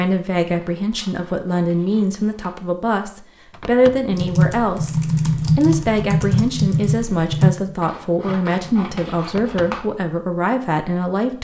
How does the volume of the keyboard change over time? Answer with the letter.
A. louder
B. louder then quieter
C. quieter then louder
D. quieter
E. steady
D.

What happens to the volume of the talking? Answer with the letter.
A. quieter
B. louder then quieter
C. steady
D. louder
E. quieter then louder
C.